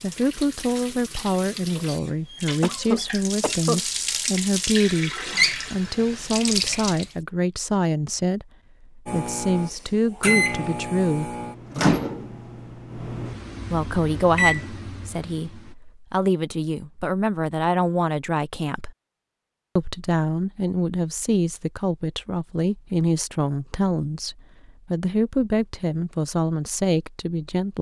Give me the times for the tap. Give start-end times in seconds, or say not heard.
0.0-7.2.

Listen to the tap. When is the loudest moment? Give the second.
5 s.